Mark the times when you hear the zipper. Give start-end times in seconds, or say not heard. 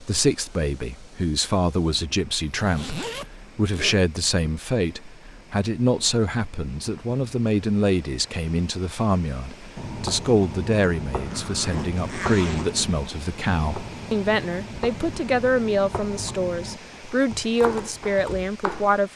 2.5-4.0, 11.2-12.9.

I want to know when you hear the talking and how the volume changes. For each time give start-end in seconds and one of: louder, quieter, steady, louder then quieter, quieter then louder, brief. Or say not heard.
0.0-19.1 steady.